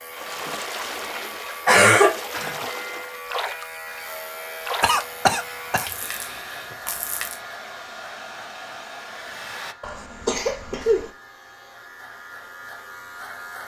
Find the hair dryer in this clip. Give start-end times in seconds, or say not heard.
3.9-9.8.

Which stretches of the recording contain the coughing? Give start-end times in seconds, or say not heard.
1.1-2.6, 4.8-6.4, 9.8-11.1.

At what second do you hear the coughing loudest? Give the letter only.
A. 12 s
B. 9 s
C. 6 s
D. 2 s
D.